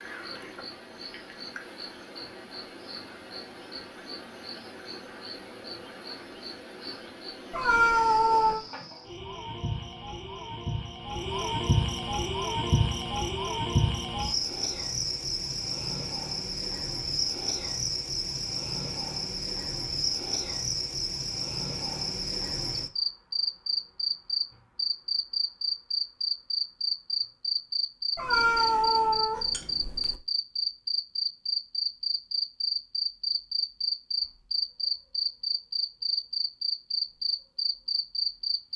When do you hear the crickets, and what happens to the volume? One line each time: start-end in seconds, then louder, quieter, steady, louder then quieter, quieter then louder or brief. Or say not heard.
0.0-38.7 louder.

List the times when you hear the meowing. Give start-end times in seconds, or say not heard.
7.5-8.6, 28.1-30.2.